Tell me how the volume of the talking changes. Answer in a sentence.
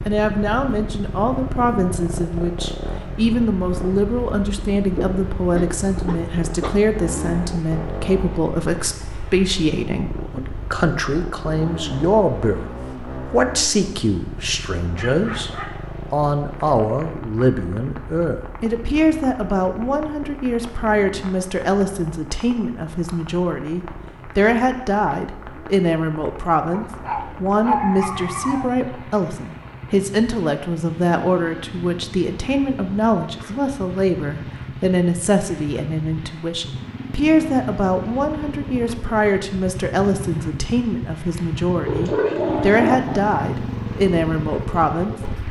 The volume of the talking stays about the same.